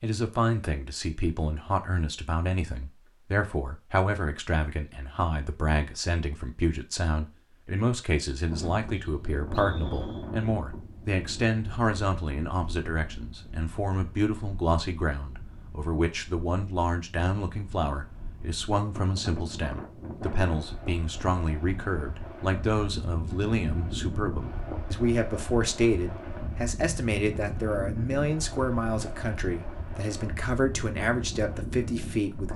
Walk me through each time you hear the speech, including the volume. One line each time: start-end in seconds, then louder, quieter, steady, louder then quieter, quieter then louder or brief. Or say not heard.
0.0-32.5 steady.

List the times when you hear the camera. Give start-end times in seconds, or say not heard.
not heard.